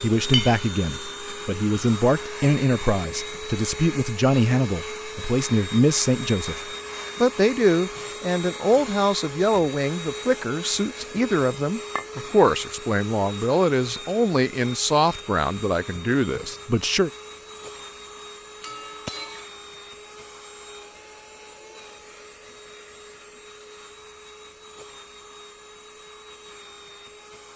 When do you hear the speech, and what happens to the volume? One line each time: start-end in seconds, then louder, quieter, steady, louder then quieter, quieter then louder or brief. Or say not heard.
0.0-17.1 steady.